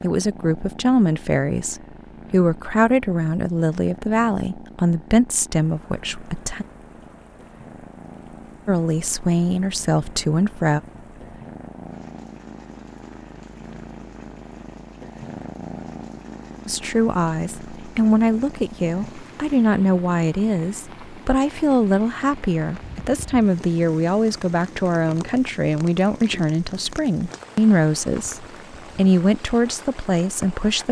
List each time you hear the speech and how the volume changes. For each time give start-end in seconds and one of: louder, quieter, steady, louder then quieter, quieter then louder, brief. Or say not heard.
0.0-6.7 steady
8.7-10.8 brief
16.6-30.8 steady.